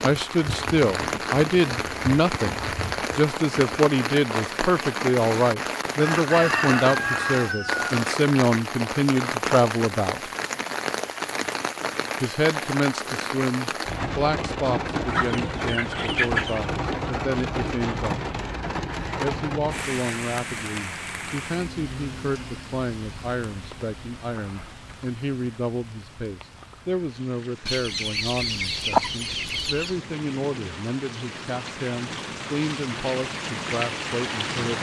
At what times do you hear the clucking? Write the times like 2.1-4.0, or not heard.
6.0-8.0, 15.1-16.6, 27.6-29.9.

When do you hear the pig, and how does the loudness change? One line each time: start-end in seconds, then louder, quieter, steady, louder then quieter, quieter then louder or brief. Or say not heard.
not heard.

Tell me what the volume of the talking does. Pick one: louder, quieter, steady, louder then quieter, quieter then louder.
quieter.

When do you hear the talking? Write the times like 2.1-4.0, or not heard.
0.0-10.3, 12.2-18.2, 19.2-34.7.